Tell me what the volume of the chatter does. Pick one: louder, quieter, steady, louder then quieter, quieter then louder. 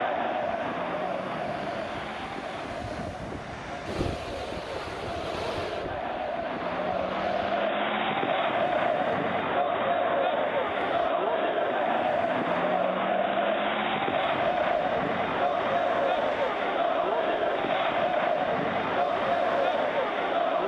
louder.